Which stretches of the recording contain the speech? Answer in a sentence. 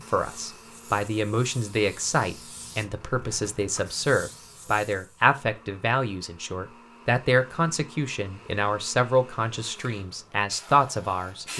You can hear the speech from 0.1 to 11.5 s.